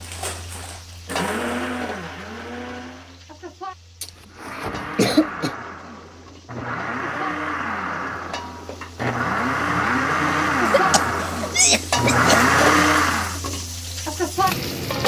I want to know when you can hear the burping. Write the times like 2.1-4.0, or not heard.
not heard.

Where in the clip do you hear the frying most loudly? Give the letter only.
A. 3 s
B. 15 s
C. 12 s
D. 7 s
B.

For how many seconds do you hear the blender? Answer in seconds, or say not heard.
12 s.